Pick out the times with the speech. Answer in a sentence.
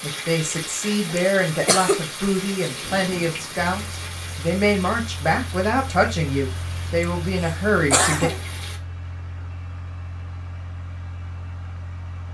You can hear the speech from 0.0 to 8.3 s.